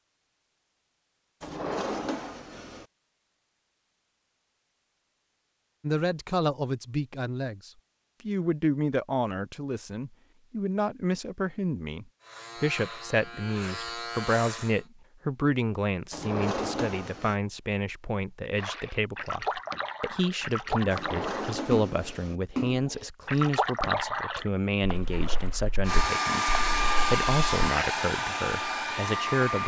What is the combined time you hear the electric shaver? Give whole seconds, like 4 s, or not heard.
3 s.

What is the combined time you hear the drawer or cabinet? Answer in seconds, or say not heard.
4 s.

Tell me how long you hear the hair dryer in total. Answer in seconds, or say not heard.
4 s.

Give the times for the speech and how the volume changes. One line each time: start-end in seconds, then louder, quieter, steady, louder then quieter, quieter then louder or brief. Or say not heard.
5.8-29.6 steady.